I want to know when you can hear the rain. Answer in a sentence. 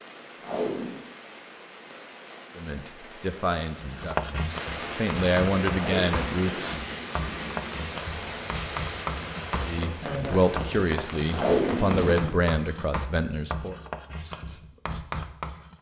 The rain can be heard from 0.0 to 12.2 s.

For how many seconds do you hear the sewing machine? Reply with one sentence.
You can't hear the sewing machine here.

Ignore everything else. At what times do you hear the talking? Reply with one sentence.
You can hear the talking from 2.5 to 6.8 s and from 9.6 to 13.8 s.